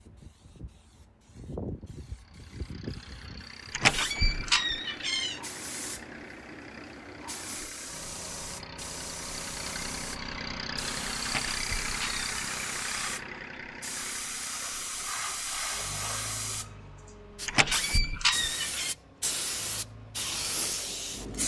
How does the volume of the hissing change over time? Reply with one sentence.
The loudness of the hissing goes up.